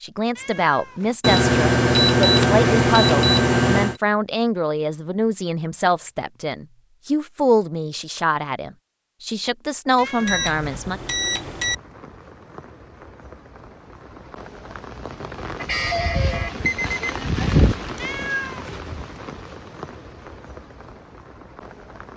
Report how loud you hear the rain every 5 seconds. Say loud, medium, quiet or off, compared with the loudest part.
off, off, quiet, loud, quiet.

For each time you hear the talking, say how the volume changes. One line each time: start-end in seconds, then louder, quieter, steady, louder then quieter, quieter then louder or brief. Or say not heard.
0.0-11.0 steady.